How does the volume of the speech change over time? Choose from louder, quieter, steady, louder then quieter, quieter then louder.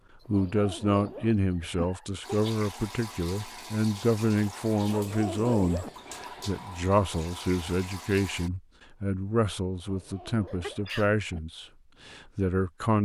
steady.